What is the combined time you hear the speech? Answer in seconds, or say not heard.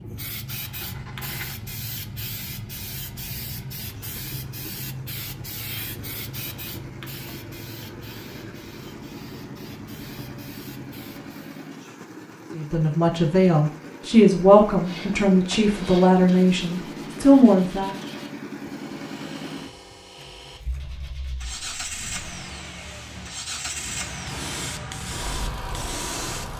5 s.